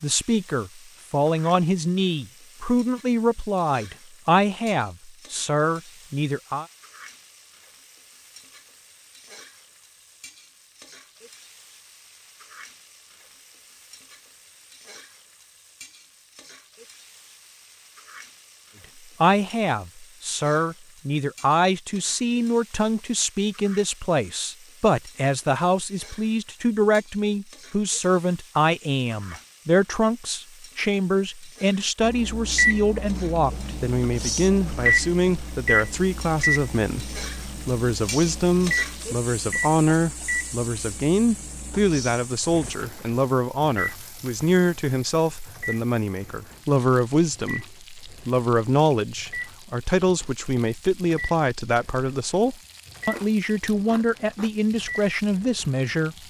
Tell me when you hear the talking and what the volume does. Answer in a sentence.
You can hear the talking from 0.0 to 6.7 s, at a steady volume; and from 19.2 to 56.2 s, at a steady volume.